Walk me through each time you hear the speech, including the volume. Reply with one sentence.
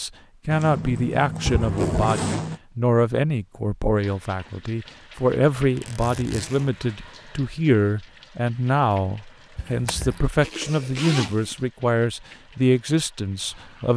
You can hear the speech from 0.0 to 13.9 s, at a steady volume.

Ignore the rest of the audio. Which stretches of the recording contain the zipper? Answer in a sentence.
The zipper can be heard from 0.5 to 2.6 s, from 5.5 to 7.0 s and from 10.4 to 11.6 s.